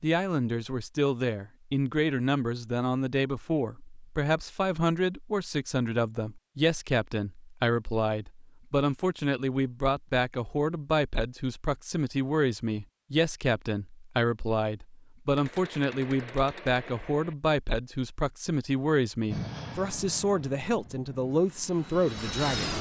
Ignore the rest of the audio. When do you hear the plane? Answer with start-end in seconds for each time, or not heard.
19.3-22.7.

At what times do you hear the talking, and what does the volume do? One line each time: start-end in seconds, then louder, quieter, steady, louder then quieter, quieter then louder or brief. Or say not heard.
0.0-22.7 steady.